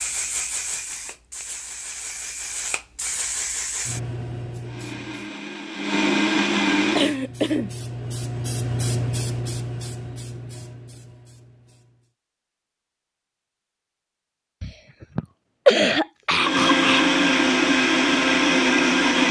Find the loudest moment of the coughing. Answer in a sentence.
The loudest moment of the coughing is at 16 seconds.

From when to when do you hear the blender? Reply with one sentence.
The blender can be heard from 4.6 to 7.2 s and from 16.4 to 19.2 s.